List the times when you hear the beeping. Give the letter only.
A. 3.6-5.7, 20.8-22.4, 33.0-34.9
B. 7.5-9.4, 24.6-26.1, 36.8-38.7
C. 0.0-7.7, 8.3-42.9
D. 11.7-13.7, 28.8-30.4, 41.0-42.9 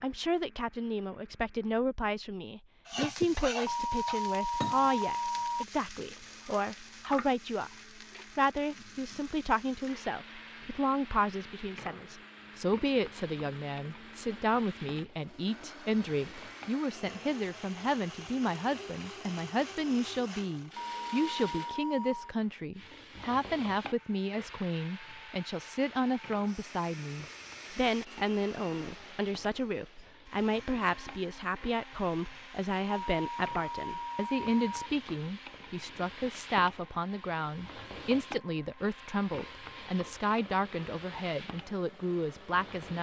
A.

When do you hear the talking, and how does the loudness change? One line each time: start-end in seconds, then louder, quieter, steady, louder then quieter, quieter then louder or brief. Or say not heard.
0.0-7.7 steady
8.3-42.9 steady.